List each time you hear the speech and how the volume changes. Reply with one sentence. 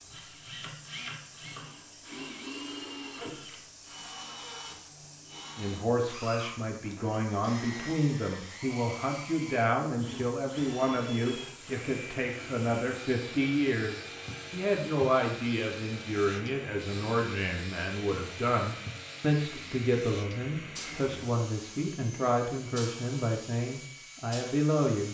The speech can be heard from 5.5 to 25.0 s, at a steady volume.